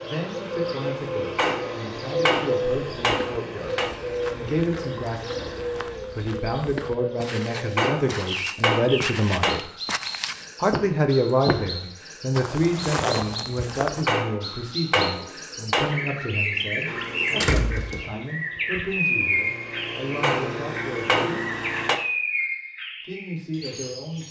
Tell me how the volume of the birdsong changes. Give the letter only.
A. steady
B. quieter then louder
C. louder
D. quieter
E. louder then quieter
B.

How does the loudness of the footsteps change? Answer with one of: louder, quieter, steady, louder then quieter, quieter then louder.
louder.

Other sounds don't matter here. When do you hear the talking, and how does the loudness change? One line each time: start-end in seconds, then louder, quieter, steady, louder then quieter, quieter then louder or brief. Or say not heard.
0.0-9.7 louder
10.6-21.6 quieter
23.1-24.2 brief.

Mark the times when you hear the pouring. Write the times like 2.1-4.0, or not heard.
not heard.